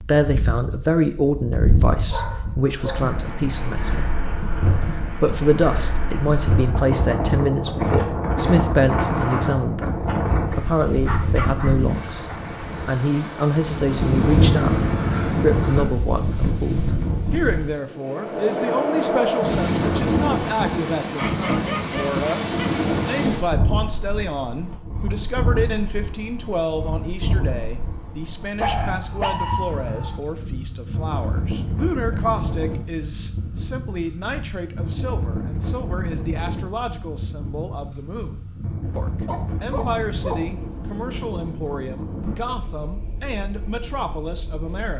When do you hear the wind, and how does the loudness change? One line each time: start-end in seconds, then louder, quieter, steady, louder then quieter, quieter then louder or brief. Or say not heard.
0.0-44.9 quieter.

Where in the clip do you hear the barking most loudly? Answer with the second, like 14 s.
29 s.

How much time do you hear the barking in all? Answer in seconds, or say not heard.
8 s.